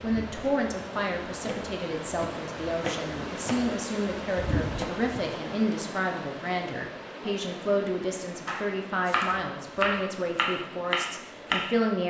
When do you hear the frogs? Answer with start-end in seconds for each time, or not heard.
not heard.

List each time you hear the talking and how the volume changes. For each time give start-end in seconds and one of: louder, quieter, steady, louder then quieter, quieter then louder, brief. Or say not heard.
0.0-12.0 steady.